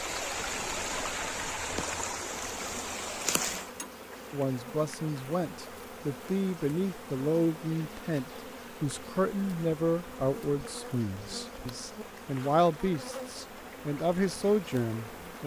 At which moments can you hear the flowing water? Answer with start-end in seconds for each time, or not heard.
0.0-15.4.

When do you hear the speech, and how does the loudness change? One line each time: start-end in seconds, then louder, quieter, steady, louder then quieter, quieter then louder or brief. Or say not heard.
4.3-15.4 steady.